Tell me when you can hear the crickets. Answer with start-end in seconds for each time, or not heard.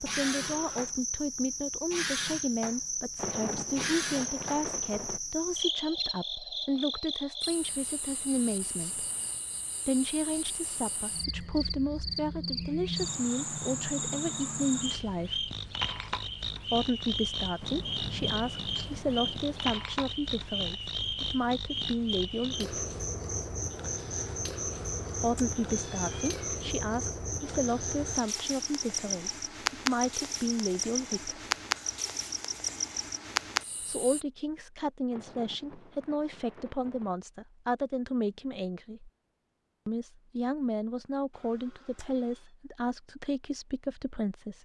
0.0-34.2.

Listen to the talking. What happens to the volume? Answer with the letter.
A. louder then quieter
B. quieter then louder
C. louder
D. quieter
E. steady
E.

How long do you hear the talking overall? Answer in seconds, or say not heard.
37 s.